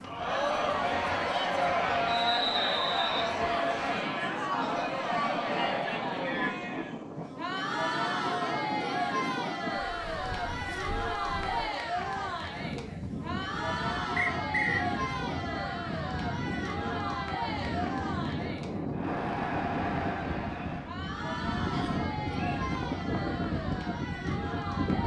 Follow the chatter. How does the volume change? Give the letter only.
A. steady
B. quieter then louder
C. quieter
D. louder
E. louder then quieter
C.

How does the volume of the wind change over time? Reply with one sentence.
The loudness of the wind goes up.